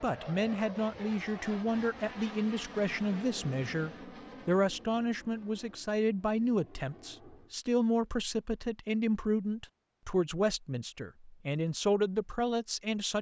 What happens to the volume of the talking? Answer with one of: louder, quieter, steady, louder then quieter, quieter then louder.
steady.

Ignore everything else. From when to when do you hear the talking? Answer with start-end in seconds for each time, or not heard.
0.0-13.1.